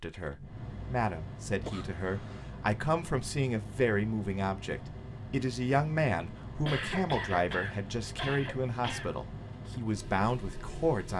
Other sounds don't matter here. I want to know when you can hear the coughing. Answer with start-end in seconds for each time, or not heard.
1.6-2.5, 6.7-9.1.